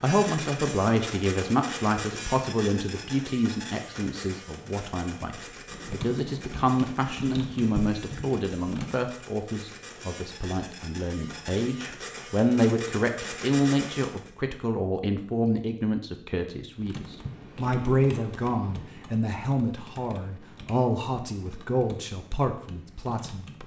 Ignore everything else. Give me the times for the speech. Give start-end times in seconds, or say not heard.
0.0-23.6.